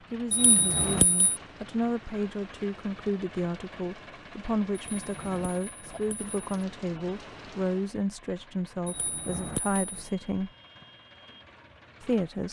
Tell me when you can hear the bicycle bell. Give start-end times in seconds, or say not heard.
0.3-1.4, 4.7-6.5, 8.8-10.1.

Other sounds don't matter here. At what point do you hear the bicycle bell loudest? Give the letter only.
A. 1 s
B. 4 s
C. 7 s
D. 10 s
A.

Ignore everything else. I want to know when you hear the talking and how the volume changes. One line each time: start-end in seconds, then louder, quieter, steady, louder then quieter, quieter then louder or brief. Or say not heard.
0.1-10.5 steady
12.0-12.4 brief.